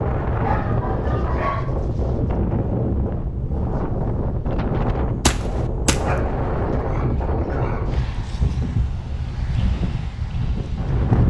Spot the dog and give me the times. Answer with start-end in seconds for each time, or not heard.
0.4-1.6, 6.0-8.0.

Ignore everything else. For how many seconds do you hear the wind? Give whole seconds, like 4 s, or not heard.
11 s.